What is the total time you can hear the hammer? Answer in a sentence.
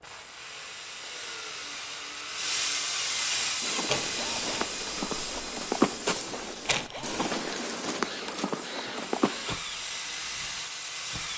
The hammer can't be heard in this clip.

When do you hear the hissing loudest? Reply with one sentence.
The loudest moment of the hissing is at 3 seconds.